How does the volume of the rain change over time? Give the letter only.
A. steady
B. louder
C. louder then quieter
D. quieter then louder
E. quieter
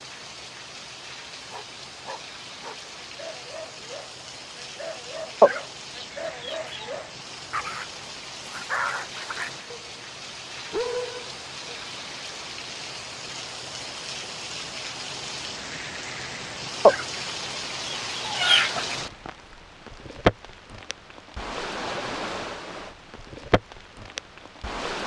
B.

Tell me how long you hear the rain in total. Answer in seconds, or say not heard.
25 s.